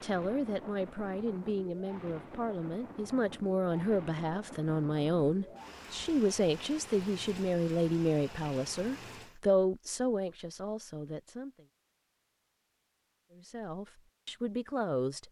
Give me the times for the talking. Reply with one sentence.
The talking can be heard from 0.0 to 11.7 s and from 13.3 to 15.2 s.